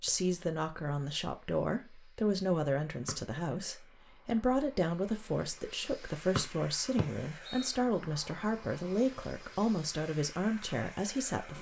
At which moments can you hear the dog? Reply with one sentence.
You can't hear the dog here.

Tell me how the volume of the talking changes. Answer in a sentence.
The loudness of the talking stays about the same.